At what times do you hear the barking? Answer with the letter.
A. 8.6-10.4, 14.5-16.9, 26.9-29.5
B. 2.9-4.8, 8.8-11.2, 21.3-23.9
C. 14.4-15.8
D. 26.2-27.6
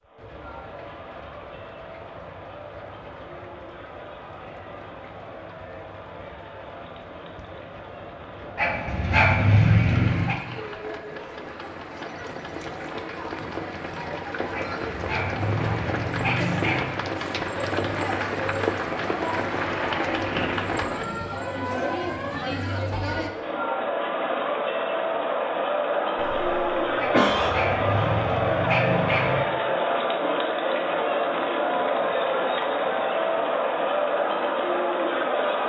A.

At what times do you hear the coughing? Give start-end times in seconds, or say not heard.
26.2-27.6.